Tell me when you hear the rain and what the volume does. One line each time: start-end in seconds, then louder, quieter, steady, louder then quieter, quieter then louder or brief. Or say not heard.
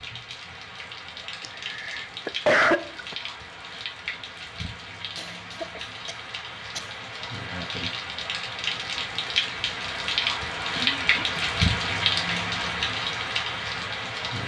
0.0-14.4 louder.